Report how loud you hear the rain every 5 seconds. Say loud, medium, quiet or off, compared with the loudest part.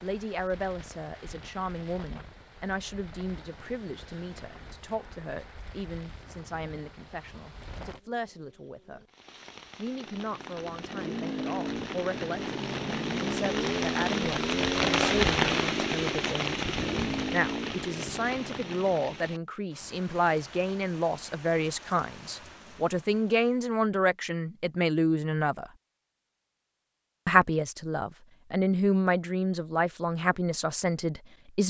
quiet, quiet, loud, loud, quiet, off, off.